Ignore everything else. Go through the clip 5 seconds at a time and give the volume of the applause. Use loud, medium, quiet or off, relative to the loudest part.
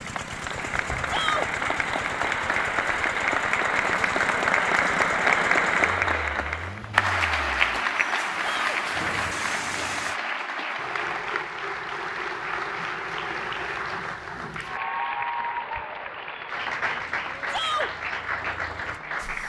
loud, loud, medium, medium.